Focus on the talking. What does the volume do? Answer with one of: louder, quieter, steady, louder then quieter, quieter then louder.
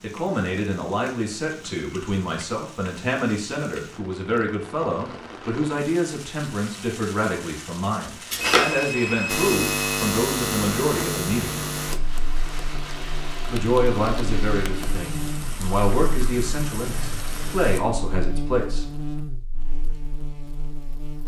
steady.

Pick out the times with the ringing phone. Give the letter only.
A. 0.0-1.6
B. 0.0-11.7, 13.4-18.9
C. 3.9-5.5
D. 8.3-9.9
D.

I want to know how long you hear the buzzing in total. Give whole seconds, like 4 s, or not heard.
12 s.